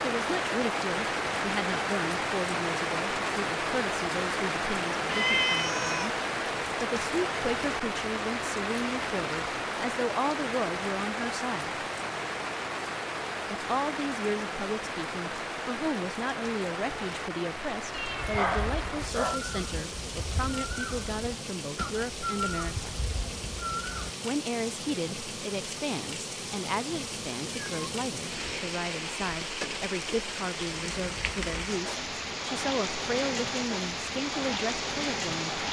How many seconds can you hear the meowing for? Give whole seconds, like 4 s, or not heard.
4 s.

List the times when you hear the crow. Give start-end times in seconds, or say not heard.
18.4-24.1.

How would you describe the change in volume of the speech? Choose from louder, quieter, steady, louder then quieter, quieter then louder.
steady.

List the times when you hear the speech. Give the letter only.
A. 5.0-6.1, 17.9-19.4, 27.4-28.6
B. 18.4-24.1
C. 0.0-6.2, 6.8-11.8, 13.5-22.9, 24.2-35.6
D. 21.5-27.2
C.